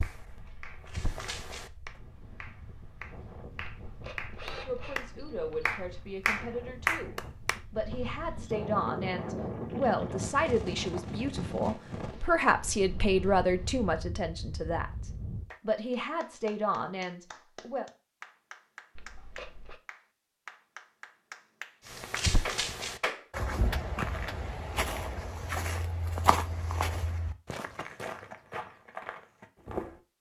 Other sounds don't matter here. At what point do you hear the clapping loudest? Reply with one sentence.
The volume of the clapping peaks at 7 seconds.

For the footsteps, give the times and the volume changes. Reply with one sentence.
You can hear the footsteps briefly from 0.0 to 1.7 s; and from 21.9 to 30.0 s, getting quieter.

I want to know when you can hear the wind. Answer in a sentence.
You can hear the wind from 0.1 to 15.4 s.